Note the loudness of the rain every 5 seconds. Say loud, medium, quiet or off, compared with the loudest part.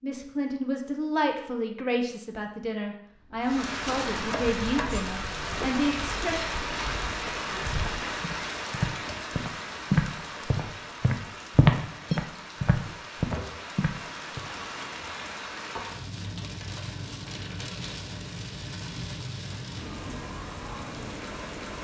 loud, loud, medium, medium, medium.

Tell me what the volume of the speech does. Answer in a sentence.
The volume of the speech stays about the same.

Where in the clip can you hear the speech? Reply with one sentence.
The speech can be heard from 0.0 to 6.5 s.